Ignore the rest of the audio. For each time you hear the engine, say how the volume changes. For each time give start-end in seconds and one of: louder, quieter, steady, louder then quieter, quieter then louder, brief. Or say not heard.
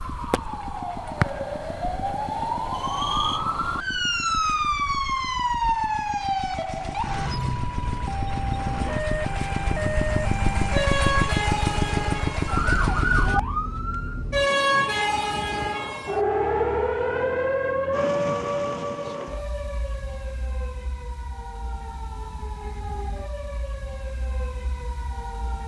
0.0-13.8 louder.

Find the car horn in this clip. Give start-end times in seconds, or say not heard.
not heard.